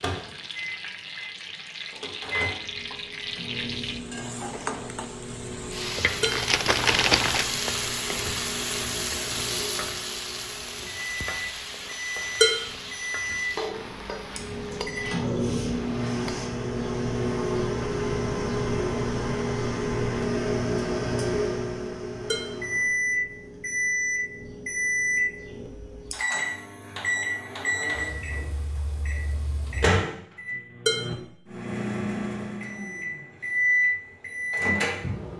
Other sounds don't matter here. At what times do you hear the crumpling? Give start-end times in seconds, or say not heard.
6.2-7.5.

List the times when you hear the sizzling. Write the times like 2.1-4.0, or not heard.
0.0-16.5.